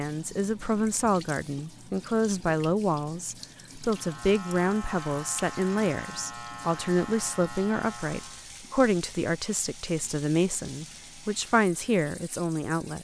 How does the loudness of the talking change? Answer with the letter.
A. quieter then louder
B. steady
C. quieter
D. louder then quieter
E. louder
B.